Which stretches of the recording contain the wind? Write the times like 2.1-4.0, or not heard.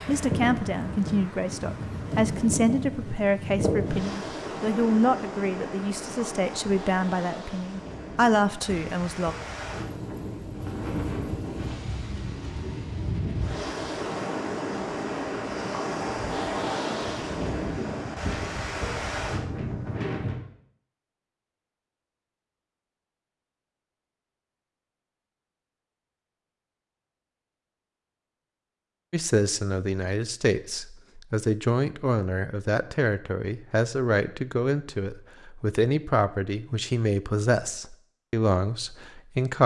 0.0-20.4.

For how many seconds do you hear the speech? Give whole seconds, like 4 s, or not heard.
20 s.